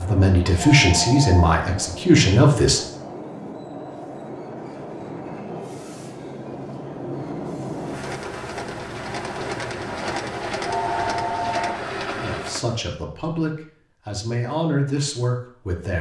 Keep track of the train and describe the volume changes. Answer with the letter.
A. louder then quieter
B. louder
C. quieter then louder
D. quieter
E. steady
B.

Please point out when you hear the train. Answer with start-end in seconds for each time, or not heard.
0.0-12.8.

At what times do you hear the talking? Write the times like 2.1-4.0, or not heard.
0.0-2.8, 12.2-15.9.